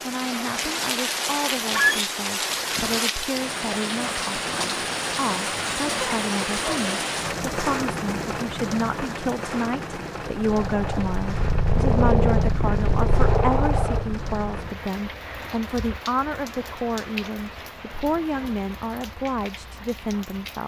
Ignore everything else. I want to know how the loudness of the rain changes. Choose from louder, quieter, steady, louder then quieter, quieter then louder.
quieter.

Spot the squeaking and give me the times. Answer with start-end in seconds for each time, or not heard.
1.7-2.1.